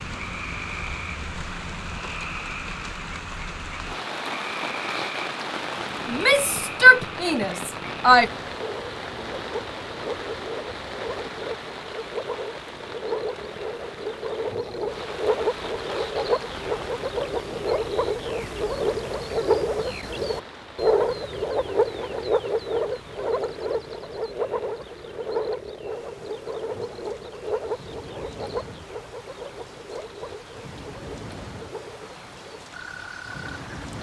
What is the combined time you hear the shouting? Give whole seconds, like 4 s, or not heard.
2 s.